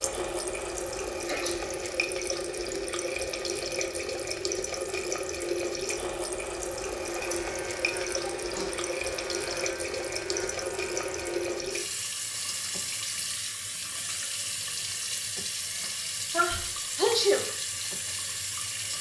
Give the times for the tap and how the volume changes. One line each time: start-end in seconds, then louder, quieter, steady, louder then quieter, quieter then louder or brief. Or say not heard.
0.0-18.9 steady.